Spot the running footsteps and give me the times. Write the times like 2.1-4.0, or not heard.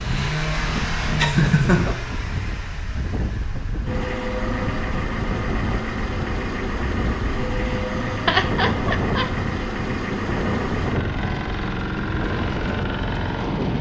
not heard.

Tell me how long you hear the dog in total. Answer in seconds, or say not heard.
not heard.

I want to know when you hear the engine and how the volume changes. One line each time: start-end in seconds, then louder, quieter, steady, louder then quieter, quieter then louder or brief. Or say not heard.
0.0-13.7 steady.